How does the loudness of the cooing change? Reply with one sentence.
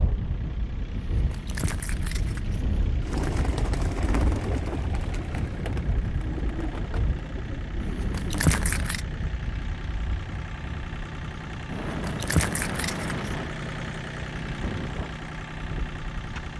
The loudness of the cooing goes down.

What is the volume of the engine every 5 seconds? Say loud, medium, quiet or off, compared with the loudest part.
medium, medium, loud, loud.